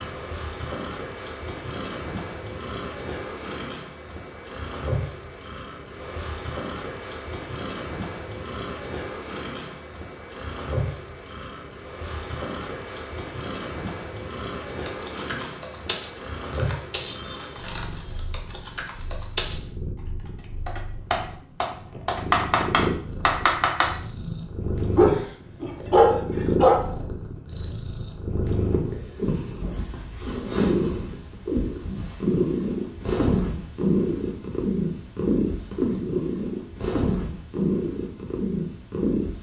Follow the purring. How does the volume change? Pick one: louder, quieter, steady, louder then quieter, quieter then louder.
louder.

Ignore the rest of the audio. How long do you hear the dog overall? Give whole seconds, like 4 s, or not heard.
2 s.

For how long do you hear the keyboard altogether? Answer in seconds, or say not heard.
9 s.